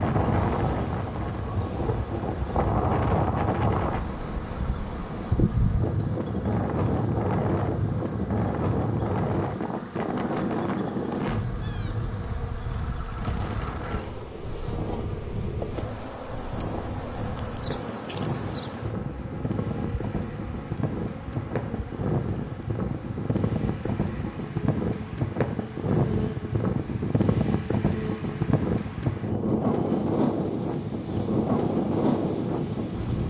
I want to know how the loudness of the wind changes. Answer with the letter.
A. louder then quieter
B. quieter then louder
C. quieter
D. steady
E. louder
B.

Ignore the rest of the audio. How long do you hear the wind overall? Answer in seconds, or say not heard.
33 s.